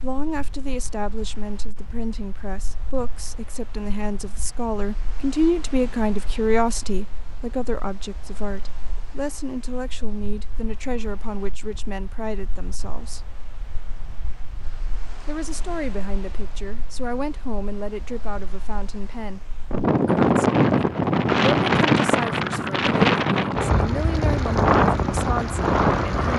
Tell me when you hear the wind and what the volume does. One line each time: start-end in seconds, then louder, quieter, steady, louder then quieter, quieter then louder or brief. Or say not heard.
0.0-26.3 louder.